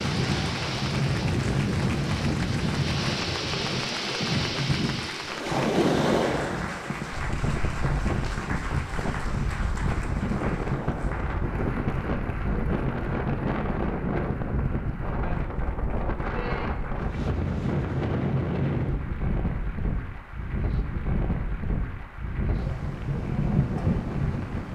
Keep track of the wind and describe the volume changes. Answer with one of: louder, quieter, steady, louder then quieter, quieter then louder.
steady.